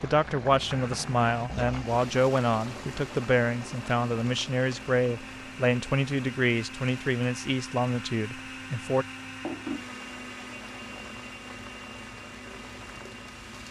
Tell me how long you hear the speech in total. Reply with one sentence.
You can hear the speech for 9 seconds altogether.